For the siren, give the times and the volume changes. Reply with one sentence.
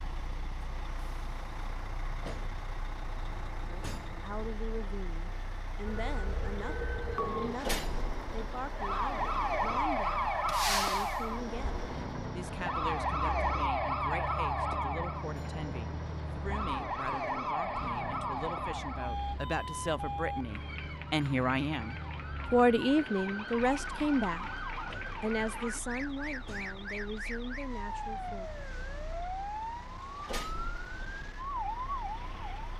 You can hear the siren from 5.8 to 32.7 s, getting quieter.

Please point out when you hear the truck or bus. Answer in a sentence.
The truck or bus can be heard from 0.0 to 32.7 s.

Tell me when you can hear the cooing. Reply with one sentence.
You can't hear the cooing here.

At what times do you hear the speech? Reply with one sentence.
The speech can be heard from 3.6 to 24.5 s and from 25.2 to 28.5 s.